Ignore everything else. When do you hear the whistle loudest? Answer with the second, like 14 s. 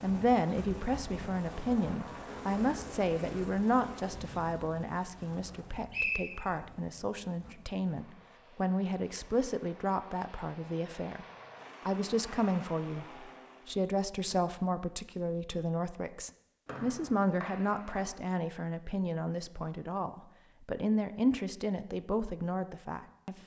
6 s.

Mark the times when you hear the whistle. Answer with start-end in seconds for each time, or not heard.
5.5-6.4, 16.6-18.1.